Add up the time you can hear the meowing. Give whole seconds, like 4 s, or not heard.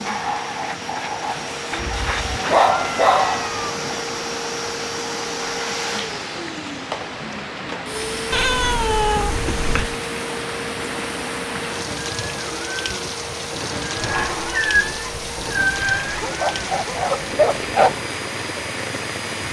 6 s.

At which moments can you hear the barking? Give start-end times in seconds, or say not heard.
1.8-3.5, 16.2-18.0.